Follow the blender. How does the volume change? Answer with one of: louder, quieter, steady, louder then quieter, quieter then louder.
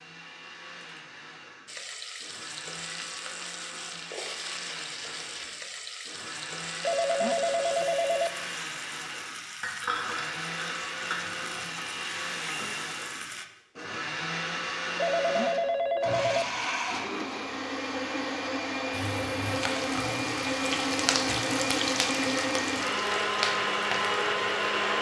louder.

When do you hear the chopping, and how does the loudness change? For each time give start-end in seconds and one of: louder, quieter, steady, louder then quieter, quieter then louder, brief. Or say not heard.
not heard.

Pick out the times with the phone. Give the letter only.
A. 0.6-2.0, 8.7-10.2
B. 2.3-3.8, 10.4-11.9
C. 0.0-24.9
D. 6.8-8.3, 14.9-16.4
D.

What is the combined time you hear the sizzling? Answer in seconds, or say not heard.
18 s.